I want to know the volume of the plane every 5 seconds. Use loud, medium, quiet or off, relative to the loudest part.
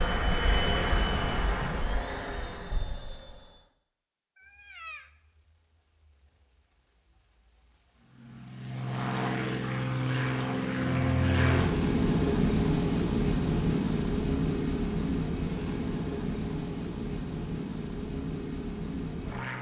medium, medium, loud, medium.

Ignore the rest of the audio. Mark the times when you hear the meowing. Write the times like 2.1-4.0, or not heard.
4.3-5.1.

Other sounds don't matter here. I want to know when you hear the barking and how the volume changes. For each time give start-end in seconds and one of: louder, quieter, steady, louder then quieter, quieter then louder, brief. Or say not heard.
not heard.